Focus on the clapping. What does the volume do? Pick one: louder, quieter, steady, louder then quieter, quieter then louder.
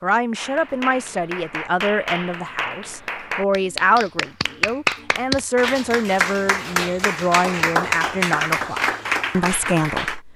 louder.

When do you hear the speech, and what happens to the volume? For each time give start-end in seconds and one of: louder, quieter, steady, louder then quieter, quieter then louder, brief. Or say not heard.
0.0-10.3 steady.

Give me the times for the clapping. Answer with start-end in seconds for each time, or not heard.
0.3-10.2.